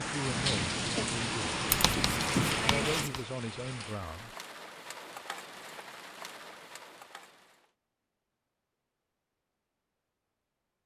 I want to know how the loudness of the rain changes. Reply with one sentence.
The loudness of the rain goes down.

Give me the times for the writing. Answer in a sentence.
You can hear the writing from 1.6 to 3.2 s.